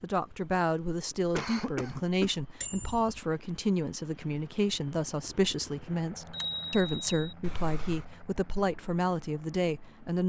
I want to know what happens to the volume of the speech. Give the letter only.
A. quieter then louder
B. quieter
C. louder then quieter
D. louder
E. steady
E.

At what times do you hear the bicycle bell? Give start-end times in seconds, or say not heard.
2.6-3.2, 6.3-7.3.